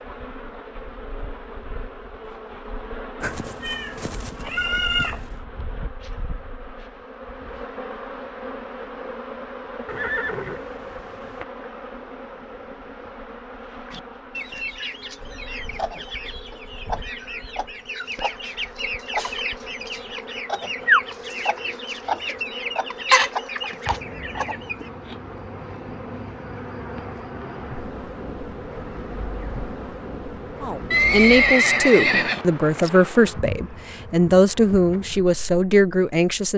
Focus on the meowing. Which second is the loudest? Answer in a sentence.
The loudest moment of the meowing is at 5 seconds.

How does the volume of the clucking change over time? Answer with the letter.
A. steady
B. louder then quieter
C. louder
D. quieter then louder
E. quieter
C.